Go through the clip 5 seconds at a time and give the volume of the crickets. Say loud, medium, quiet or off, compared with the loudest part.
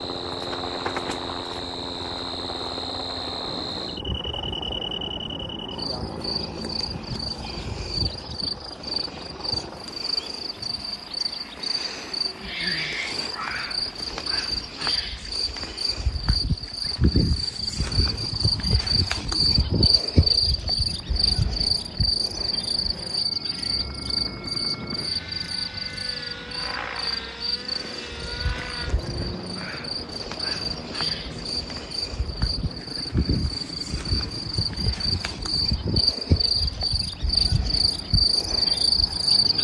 medium, medium, medium, loud, loud, medium, medium, loud.